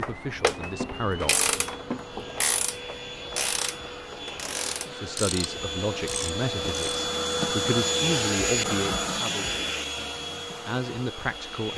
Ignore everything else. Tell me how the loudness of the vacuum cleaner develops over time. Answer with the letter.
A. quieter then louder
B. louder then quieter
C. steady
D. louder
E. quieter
B.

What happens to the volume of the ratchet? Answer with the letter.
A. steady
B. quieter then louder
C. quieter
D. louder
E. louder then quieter
C.